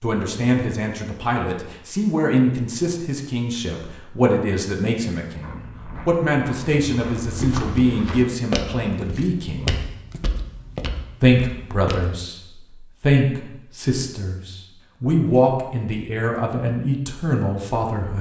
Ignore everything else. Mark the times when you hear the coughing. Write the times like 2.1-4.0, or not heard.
not heard.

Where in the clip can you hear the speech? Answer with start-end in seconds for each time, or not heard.
0.0-9.8, 11.2-18.1.